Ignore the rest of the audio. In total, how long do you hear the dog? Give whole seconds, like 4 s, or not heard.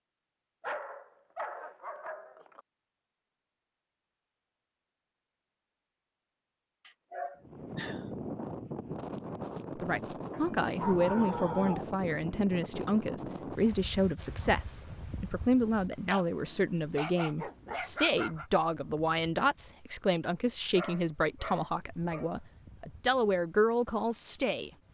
9 s.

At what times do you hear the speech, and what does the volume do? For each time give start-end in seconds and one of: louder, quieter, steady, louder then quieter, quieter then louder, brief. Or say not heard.
9.8-24.7 steady.